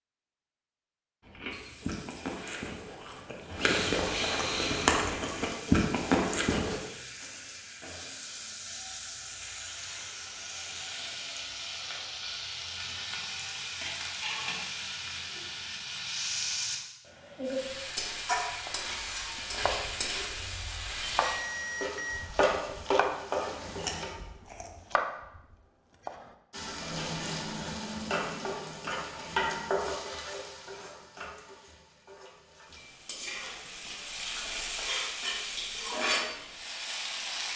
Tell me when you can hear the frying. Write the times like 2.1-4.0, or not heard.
1.5-24.1, 26.5-37.5.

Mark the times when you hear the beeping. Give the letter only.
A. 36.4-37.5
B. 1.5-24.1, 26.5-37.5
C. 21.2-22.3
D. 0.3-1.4
C.